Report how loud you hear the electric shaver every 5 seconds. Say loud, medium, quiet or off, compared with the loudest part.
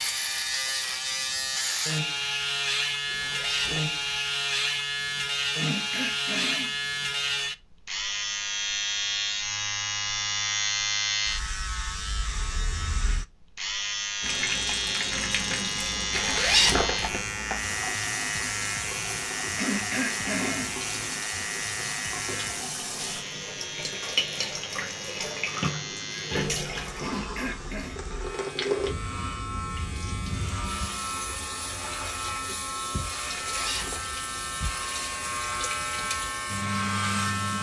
loud, loud, loud, loud, medium, medium, medium, loud.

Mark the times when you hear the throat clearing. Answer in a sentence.
You can hear the throat clearing from 5.5 to 6.8 s, from 19.6 to 20.8 s and from 27.0 to 28.0 s.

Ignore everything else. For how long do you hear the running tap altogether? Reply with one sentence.
You can hear the running tap for 23 seconds altogether.